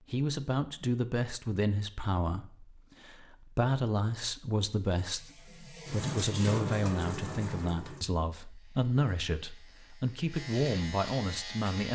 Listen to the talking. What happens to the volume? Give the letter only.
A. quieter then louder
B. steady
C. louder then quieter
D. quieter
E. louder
B.